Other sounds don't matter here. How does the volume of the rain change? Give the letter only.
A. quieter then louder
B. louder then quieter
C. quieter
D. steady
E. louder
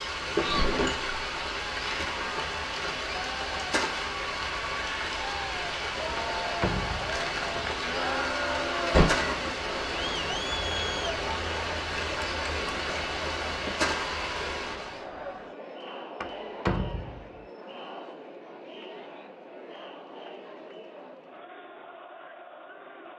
D.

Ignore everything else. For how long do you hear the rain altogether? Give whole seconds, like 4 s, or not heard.
15 s.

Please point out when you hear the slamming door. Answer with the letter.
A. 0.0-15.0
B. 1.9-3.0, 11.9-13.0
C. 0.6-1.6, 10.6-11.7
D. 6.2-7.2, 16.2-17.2
D.